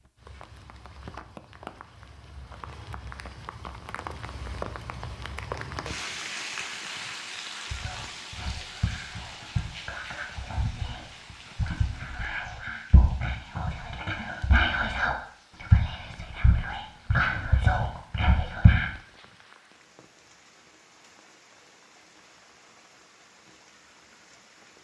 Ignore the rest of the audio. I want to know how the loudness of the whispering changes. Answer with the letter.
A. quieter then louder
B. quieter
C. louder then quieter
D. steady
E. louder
E.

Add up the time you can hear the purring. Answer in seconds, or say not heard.
not heard.